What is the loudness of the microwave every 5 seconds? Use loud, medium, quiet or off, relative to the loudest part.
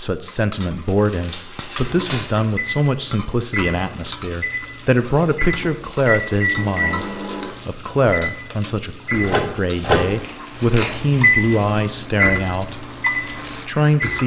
medium, loud, loud.